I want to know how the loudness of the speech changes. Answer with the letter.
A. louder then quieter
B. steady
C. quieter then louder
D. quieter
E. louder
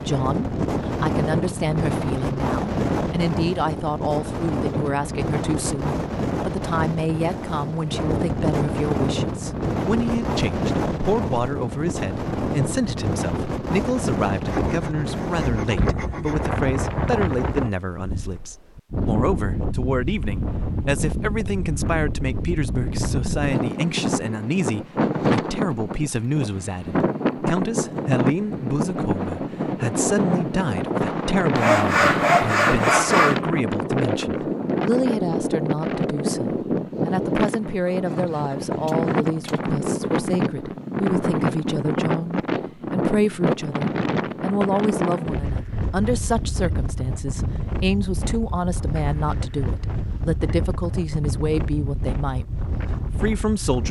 B.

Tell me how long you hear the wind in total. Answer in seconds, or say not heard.
54 s.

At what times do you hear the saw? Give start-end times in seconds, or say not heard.
14.4-16.6, 31.6-33.4.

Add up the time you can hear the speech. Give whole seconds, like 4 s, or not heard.
54 s.